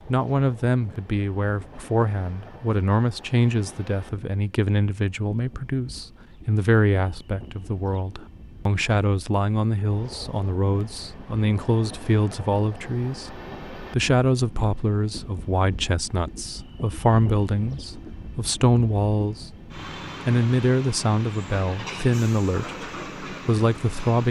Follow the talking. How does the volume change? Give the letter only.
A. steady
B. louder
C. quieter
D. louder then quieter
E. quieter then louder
A.